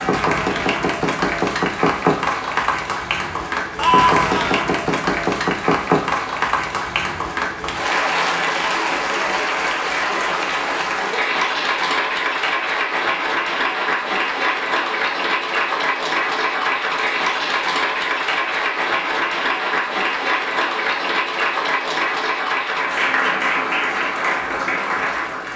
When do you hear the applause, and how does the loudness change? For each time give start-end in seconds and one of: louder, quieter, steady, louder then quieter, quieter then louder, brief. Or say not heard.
0.0-25.5 steady.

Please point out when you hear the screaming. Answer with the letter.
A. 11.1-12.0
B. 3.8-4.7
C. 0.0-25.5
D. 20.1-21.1
B.